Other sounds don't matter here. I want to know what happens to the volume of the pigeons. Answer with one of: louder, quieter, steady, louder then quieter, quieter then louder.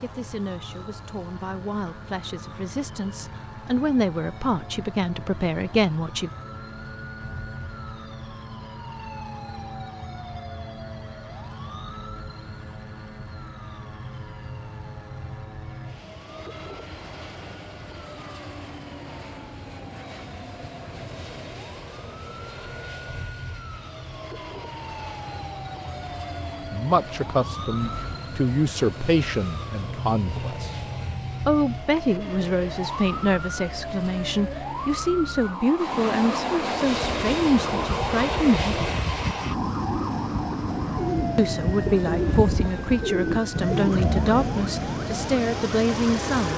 louder.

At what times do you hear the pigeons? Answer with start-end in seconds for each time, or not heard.
36.8-45.4.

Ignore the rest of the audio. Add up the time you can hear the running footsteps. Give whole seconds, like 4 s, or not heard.
not heard.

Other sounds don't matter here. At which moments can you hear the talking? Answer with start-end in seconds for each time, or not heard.
0.0-6.3, 26.7-30.8, 31.4-38.9, 41.4-46.5.